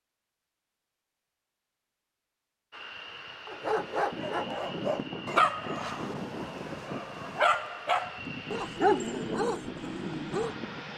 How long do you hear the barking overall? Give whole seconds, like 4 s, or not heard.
7 s.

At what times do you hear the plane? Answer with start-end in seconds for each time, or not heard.
2.7-10.9.